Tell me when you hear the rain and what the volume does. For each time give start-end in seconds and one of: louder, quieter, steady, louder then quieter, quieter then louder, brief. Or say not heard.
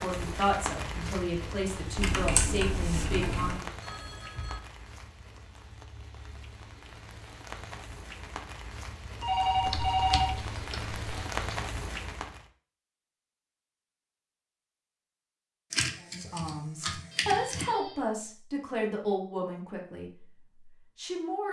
0.0-12.4 quieter then louder.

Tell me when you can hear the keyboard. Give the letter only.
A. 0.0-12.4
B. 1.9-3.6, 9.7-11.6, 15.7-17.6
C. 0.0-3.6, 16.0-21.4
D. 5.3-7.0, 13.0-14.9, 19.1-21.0
B.